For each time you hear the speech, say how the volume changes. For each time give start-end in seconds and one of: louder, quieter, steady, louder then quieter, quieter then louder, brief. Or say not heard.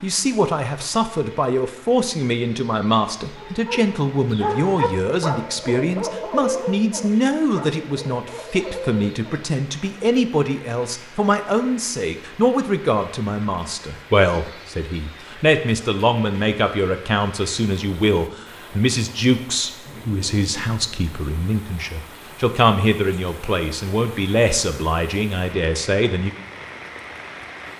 0.0-26.3 steady.